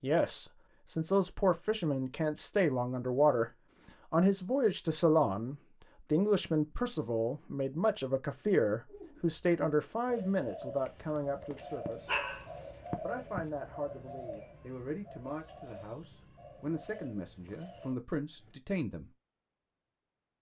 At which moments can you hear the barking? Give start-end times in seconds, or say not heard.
11.6-13.4.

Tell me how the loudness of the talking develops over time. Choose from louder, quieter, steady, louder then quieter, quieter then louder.
quieter.